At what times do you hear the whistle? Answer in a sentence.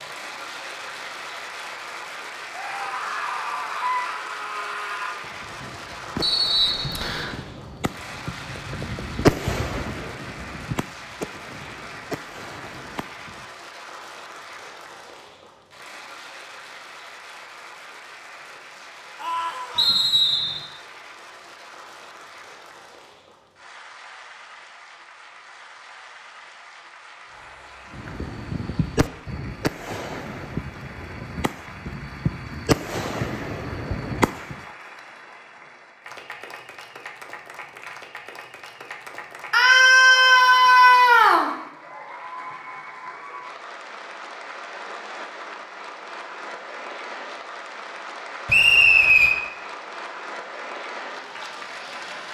You can hear the whistle from 6.2 to 7.3 s, from 19.8 to 20.6 s and from 48.5 to 49.4 s.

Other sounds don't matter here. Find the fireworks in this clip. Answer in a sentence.
The fireworks can be heard from 5.2 to 13.4 s and from 27.9 to 34.6 s.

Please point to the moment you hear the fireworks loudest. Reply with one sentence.
The volume of the fireworks peaks at 9 seconds.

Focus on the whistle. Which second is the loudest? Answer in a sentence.
The loudest moment of the whistle is at 49 seconds.